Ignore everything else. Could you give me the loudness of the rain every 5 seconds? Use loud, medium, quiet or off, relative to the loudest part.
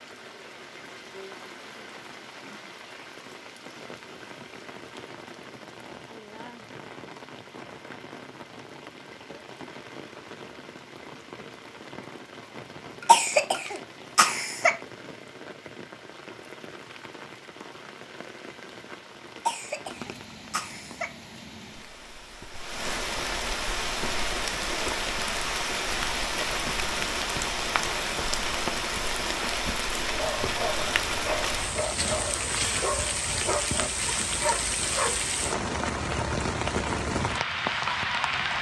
quiet, quiet, quiet, quiet, medium, loud, loud, loud.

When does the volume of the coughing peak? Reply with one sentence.
The loudest moment of the coughing is at 13 seconds.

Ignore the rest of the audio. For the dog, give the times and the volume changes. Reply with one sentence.
The dog can be heard from 30.1 to 35.3 s, at a steady volume.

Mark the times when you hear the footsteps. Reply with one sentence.
You can't hear the footsteps here.